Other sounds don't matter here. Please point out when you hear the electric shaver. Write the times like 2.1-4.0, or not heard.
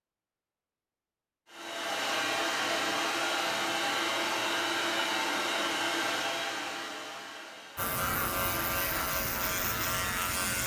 7.8-10.6.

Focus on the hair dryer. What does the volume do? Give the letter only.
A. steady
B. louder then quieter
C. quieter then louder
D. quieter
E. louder
D.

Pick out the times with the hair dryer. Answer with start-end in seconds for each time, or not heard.
1.5-9.1.